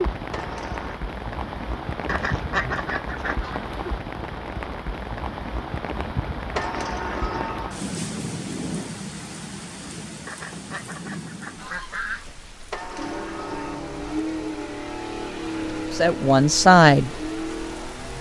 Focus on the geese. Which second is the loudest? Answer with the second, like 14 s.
3 s.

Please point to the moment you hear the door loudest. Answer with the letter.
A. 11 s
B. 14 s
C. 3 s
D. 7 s
D.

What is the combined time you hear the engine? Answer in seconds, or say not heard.
5 s.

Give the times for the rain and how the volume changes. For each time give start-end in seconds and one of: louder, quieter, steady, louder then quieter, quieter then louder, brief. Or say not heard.
0.0-18.1 quieter.